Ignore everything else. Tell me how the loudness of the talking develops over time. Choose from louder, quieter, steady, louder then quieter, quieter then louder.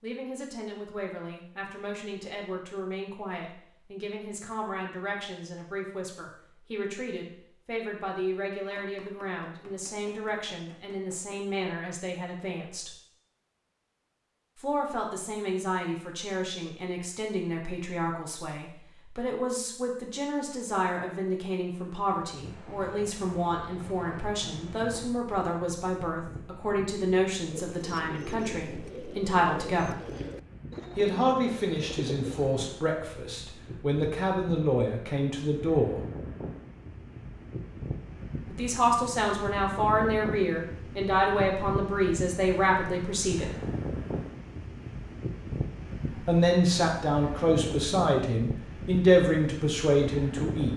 louder.